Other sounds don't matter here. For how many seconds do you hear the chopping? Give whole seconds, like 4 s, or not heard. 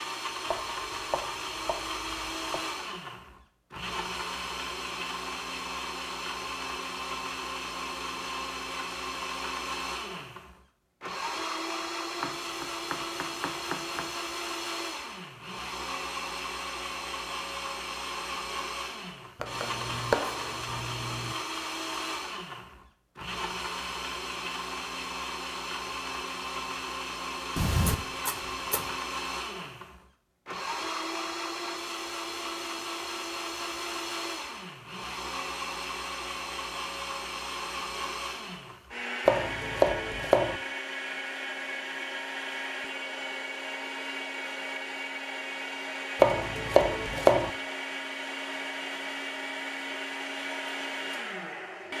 10 s.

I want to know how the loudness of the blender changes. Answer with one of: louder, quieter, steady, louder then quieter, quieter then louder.
steady.